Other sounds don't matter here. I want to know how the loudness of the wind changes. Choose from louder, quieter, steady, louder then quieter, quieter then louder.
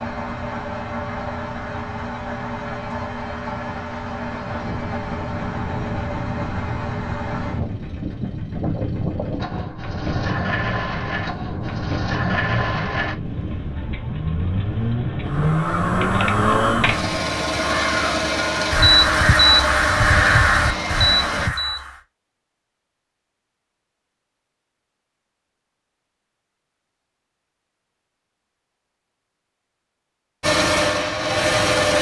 louder.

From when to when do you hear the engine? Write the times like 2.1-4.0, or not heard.
0.0-21.5, 30.4-31.9.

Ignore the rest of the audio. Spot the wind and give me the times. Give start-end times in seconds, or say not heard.
0.0-17.4.